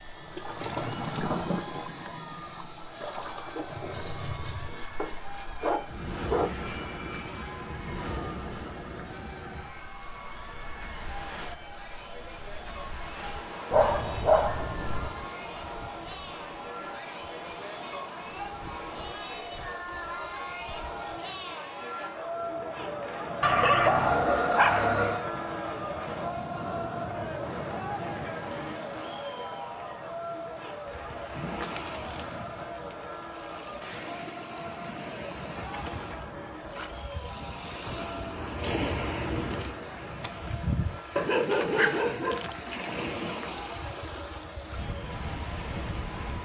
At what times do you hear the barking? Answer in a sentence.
The barking can be heard from 5.0 to 6.5 s, from 13.7 to 15.1 s, from 23.4 to 25.2 s and from 41.1 to 42.5 s.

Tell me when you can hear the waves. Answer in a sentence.
You can hear the waves from 0.0 to 46.3 s.